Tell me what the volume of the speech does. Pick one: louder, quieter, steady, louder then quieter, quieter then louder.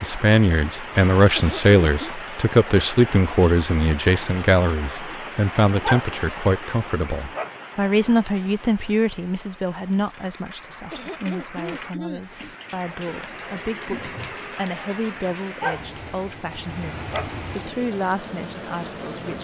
quieter.